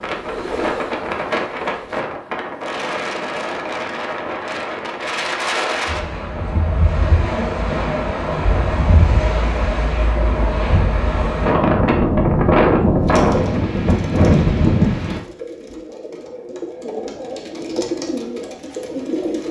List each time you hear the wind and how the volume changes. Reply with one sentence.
The wind can be heard from 0.0 to 15.2 s, getting louder.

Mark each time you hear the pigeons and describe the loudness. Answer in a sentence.
You can hear the pigeons briefly from 0.0 to 2.1 s; and from 12.9 to 19.4 s, getting louder.